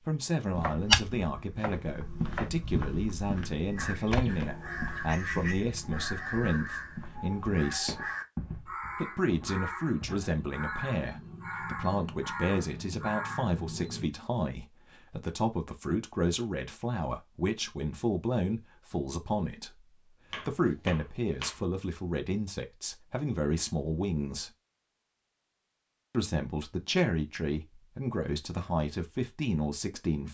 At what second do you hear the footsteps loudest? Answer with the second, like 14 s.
1 s.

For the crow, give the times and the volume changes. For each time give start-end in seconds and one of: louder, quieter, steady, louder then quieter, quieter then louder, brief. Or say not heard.
3.8-14.1 steady.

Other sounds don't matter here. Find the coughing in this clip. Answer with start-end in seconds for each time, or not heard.
not heard.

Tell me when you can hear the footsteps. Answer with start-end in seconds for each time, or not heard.
0.5-10.3.